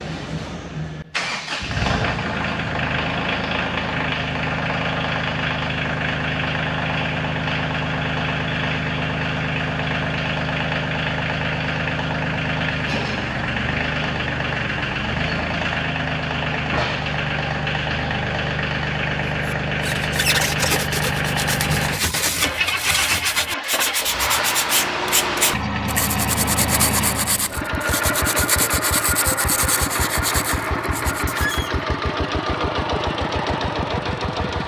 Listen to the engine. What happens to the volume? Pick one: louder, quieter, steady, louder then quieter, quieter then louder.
steady.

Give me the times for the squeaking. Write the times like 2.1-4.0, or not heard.
31.3-31.8.